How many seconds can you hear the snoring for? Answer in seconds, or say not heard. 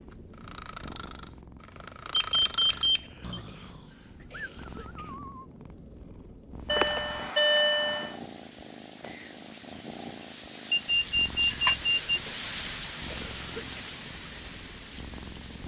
5 s.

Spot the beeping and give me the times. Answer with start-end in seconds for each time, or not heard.
2.1-3.4, 6.7-8.2, 10.7-11.9.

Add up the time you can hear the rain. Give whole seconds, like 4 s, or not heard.
9 s.